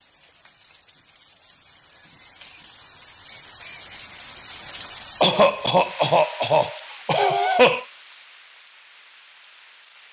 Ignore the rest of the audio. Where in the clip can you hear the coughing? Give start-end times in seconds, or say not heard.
5.2-7.8.